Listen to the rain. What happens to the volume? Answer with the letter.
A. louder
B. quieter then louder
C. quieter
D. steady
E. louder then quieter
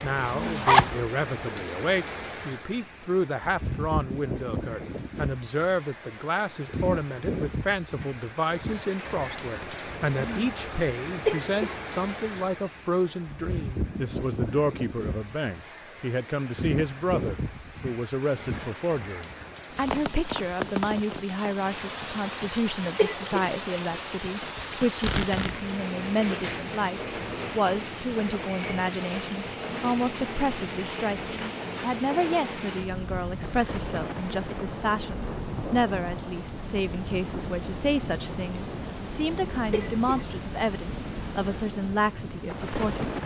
D.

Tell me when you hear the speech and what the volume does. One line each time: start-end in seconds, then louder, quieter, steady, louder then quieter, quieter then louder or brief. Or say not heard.
0.0-43.1 steady.